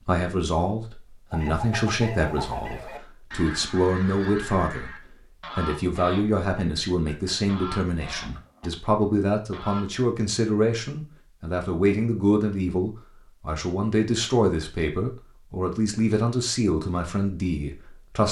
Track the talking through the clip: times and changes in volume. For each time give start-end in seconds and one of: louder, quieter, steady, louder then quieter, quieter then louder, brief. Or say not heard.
0.0-18.2 steady.